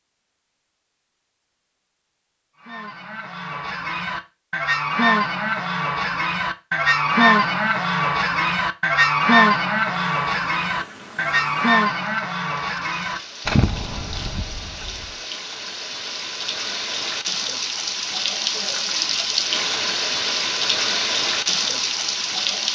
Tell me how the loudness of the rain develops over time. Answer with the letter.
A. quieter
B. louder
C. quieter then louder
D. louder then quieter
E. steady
B.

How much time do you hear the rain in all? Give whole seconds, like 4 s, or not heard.
13 s.